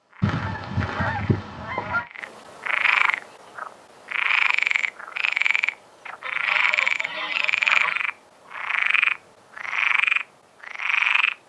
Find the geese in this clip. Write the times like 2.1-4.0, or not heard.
0.2-2.0, 6.2-8.1.